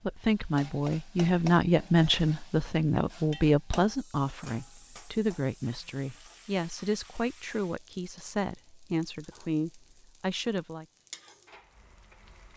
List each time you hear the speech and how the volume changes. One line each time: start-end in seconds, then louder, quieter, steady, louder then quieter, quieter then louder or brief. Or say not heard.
0.1-10.8 quieter.